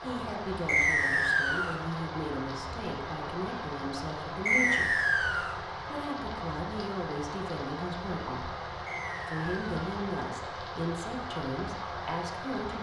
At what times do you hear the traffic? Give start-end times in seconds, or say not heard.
not heard.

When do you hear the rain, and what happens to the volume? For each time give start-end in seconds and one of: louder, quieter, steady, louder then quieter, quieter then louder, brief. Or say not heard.
0.0-12.7 steady.